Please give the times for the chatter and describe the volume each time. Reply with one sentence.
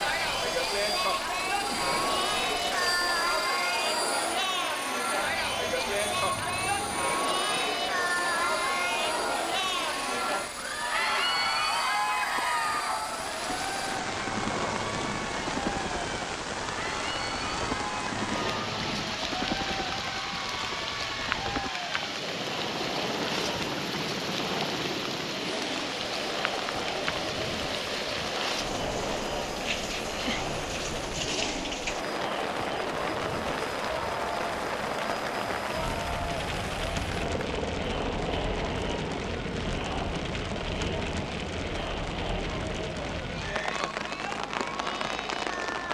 You can hear the chatter from 0.0 to 45.9 s, getting quieter.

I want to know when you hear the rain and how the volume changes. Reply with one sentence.
The rain can be heard from 0.0 to 45.9 s, getting louder.